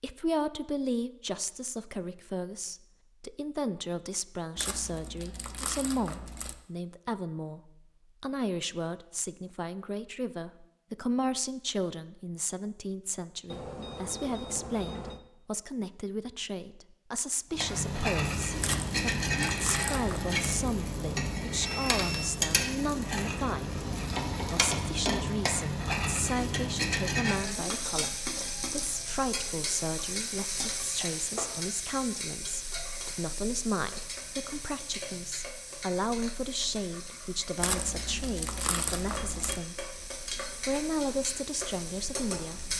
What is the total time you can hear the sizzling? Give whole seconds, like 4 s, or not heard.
25 s.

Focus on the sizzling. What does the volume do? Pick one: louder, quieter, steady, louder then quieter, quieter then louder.
quieter.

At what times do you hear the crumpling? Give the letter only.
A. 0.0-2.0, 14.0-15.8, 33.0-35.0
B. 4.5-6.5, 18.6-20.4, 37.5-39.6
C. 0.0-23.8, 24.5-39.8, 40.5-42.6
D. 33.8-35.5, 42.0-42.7
B.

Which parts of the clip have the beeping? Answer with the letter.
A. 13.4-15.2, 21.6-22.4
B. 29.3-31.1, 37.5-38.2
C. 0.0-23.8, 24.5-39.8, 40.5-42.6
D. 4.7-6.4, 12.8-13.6
A.